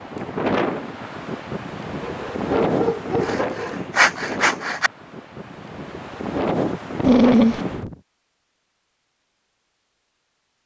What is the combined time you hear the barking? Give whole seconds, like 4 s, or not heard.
2 s.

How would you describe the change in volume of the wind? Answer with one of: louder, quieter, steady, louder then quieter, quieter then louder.
quieter then louder.